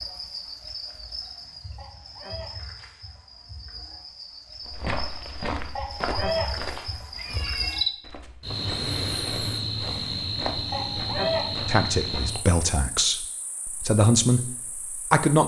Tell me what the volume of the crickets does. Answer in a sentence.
The volume of the crickets goes up, then down.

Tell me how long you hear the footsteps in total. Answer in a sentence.
You can hear the footsteps for 8 seconds altogether.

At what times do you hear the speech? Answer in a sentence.
The speech can be heard from 11.7 to 15.4 s.